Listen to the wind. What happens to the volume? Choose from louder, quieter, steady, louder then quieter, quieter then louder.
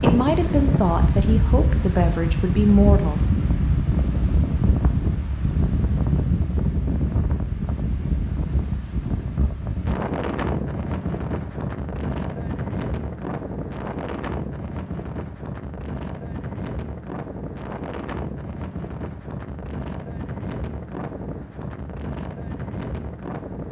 quieter.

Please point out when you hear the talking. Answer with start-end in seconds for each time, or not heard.
0.0-3.2.